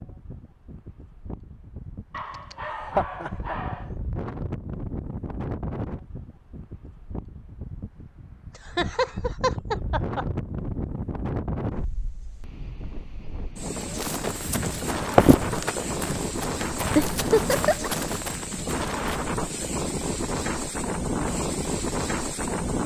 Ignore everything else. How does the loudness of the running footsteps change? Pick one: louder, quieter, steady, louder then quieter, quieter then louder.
quieter.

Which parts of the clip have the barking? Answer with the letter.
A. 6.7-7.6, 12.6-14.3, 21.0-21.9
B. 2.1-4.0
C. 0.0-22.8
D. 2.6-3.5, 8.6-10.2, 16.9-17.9
B.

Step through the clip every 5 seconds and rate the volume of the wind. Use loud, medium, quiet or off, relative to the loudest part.
medium, medium, medium, loud, loud.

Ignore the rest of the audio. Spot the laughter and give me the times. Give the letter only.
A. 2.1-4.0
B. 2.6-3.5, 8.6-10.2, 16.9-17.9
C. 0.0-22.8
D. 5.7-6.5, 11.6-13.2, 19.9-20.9
B.